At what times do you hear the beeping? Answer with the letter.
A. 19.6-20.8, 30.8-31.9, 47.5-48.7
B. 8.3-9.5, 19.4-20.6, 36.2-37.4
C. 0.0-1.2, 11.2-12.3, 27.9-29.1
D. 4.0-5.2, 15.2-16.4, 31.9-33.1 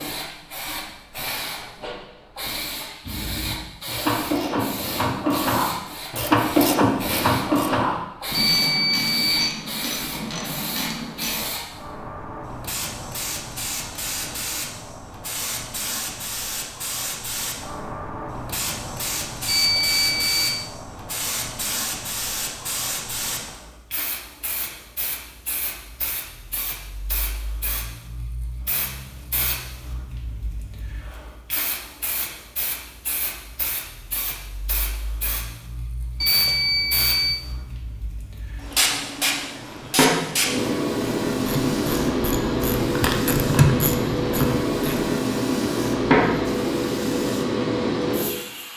B.